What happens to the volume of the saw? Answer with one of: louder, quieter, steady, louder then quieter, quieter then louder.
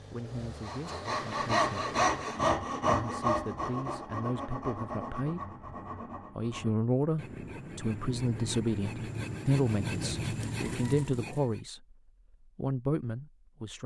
quieter then louder.